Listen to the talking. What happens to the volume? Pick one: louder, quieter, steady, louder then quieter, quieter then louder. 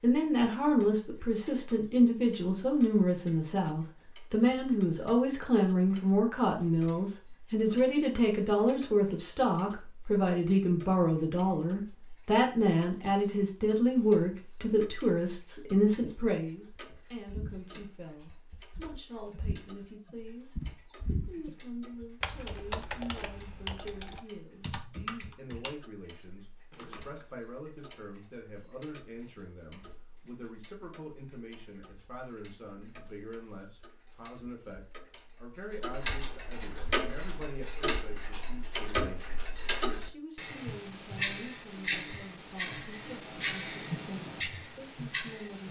quieter.